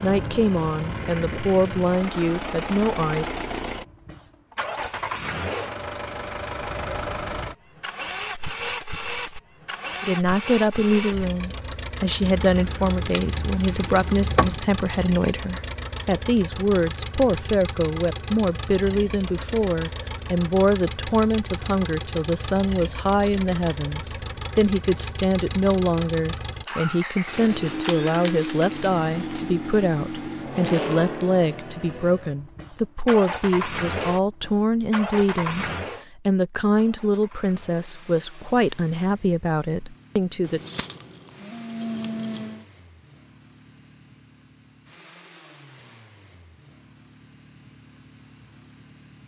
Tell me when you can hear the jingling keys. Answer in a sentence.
The jingling keys can be heard from 12.2 to 14.7 s, from 27.6 to 29.4 s and from 40.5 to 42.6 s.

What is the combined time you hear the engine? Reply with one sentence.
You can hear the engine for 49 seconds altogether.